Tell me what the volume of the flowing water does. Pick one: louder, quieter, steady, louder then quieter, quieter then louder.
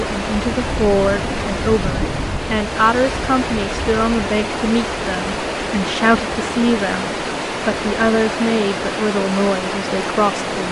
steady.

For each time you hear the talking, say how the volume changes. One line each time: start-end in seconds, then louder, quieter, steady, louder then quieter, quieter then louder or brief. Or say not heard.
0.0-10.6 steady.